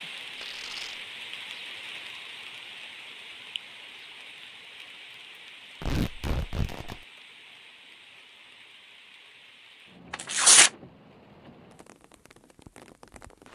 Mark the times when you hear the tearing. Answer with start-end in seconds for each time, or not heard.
0.3-1.0, 5.8-7.0, 10.1-10.7.